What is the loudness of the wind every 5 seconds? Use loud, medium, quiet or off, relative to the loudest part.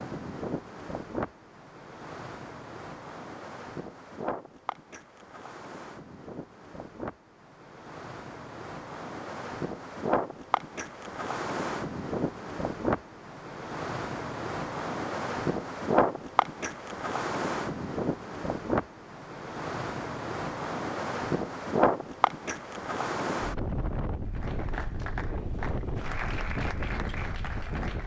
medium, medium, loud, loud, loud, medium.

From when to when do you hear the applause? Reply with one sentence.
The applause can be heard from 24.2 to 28.0 s.